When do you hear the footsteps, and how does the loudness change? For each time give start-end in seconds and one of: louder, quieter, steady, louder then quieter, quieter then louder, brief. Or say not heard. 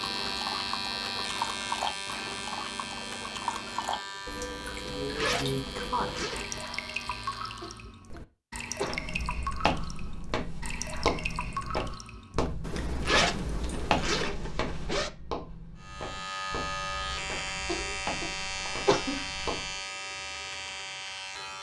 8.8-19.8 quieter.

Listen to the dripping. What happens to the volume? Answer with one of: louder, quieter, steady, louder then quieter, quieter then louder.
steady.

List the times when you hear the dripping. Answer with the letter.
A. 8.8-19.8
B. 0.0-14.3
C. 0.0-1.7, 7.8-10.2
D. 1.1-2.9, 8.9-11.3
B.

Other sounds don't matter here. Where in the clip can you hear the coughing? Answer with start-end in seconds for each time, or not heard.
7.6-9.1, 17.6-19.2.